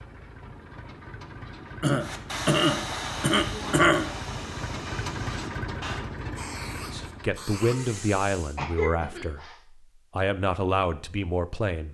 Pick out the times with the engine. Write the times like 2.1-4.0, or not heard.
0.0-7.5.